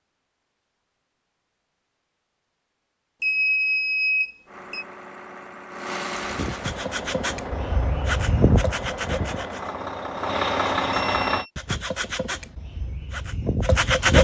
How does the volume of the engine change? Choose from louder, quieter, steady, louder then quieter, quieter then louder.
louder.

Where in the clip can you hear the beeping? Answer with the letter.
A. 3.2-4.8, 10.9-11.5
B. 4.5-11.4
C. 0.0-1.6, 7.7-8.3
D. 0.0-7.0
A.